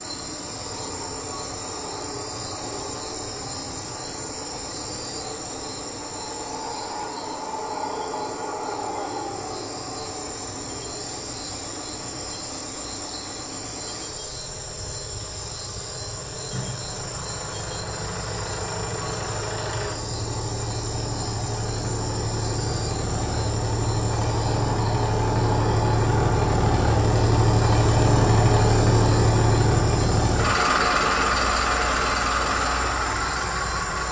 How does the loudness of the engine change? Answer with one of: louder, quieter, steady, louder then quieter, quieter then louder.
louder.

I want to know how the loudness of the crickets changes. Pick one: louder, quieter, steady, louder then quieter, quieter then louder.
steady.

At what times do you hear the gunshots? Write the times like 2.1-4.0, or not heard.
not heard.